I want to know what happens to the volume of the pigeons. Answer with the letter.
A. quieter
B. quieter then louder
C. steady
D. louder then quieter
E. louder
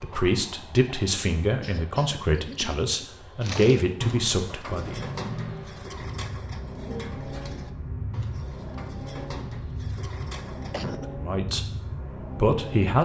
A.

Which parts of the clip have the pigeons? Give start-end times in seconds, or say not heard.
3.4-10.9.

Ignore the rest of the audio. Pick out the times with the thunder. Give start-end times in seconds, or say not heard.
not heard.